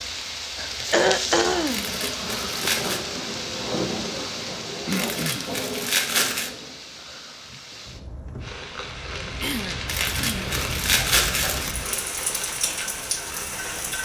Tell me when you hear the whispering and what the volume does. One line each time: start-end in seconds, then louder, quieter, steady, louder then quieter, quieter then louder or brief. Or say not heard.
not heard.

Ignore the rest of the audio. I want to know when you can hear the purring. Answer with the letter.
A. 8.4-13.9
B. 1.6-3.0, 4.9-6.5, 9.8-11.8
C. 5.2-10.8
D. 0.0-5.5
A.